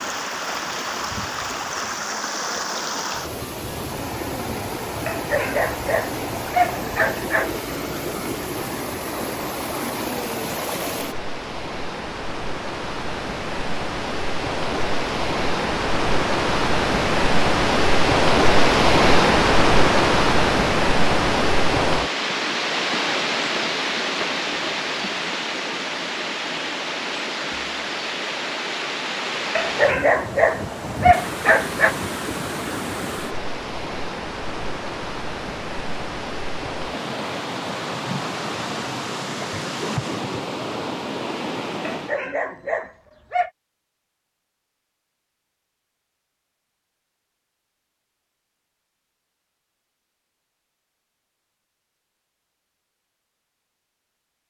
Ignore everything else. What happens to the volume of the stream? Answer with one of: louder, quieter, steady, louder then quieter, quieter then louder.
louder then quieter.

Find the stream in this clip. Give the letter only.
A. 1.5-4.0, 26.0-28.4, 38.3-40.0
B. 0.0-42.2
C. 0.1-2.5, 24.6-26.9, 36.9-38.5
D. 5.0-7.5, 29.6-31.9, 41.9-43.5
B.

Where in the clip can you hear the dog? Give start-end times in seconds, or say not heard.
5.0-7.5, 29.6-31.9, 41.9-43.5.